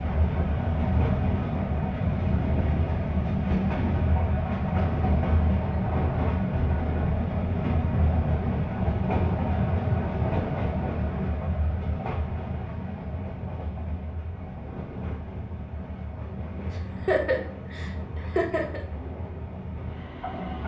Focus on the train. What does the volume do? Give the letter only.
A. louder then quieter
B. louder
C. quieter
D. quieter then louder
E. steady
C.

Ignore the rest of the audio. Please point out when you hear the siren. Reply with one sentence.
The siren can't be heard in this clip.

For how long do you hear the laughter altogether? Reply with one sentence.
You can hear the laughter for 2 seconds altogether.